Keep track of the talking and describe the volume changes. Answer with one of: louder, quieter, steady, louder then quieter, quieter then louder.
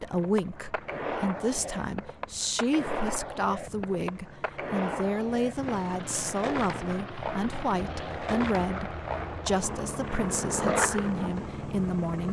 steady.